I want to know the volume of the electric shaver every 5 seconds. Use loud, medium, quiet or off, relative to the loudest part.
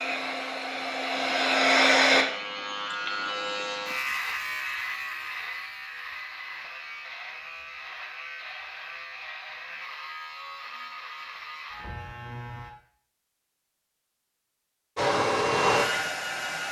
loud, medium, medium, off.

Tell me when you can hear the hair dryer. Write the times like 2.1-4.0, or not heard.
0.0-2.2, 14.9-16.6.